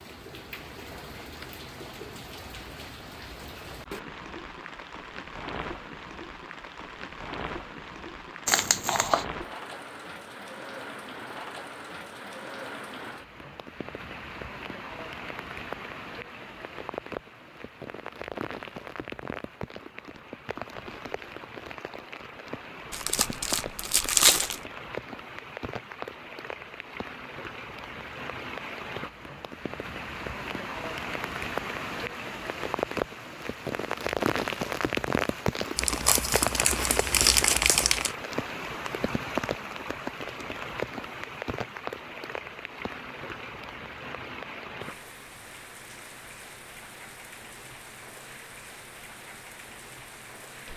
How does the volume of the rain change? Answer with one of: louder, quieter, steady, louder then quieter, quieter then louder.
louder then quieter.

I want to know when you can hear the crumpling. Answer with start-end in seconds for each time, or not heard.
8.4-9.2, 22.9-24.6, 35.8-38.1.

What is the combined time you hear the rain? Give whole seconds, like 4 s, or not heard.
51 s.